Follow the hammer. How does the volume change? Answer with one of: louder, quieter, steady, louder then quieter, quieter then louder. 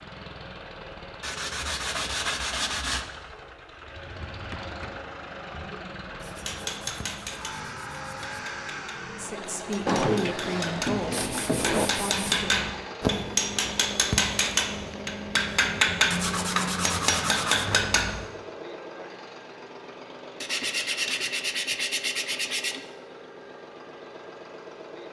louder.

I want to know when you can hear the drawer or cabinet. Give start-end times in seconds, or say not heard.
3.8-5.8, 9.8-11.9, 17.6-18.4.